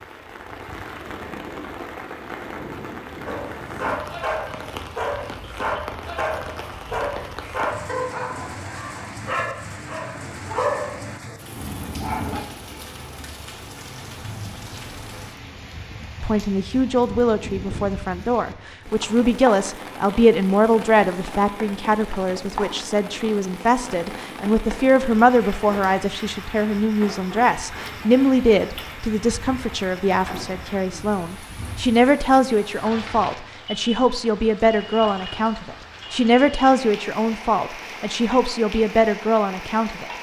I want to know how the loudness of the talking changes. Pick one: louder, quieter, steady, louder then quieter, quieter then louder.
steady.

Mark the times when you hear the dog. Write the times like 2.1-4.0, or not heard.
3.2-12.4.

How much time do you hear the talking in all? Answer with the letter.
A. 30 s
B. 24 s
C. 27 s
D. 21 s
B.